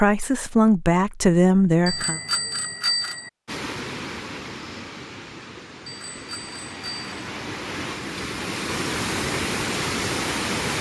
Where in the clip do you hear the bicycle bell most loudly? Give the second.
3 s.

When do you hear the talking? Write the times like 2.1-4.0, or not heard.
0.0-2.2.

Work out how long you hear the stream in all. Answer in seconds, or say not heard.
7 s.